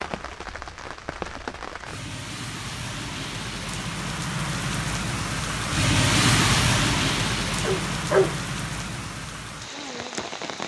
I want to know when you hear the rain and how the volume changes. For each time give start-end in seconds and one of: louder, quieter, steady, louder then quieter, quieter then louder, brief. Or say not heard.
0.0-10.6 louder then quieter.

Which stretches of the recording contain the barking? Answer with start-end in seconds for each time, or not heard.
7.6-8.3.